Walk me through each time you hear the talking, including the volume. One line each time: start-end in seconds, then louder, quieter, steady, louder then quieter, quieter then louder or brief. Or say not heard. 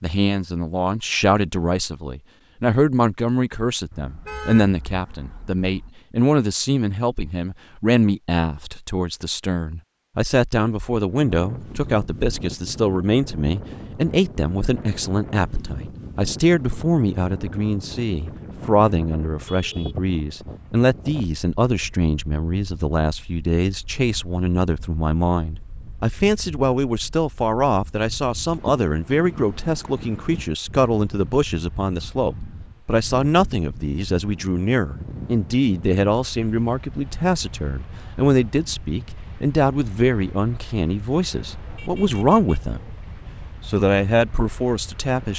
0.0-42.9 steady
43.6-45.3 brief.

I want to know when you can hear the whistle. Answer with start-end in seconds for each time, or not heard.
not heard.